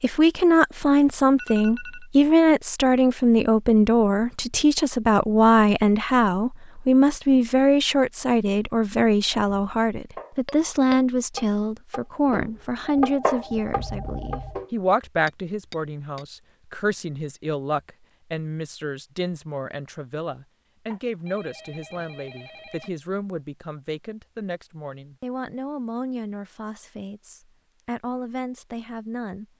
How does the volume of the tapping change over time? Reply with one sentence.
The volume of the tapping goes up, then down.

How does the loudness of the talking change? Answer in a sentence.
The volume of the talking goes down.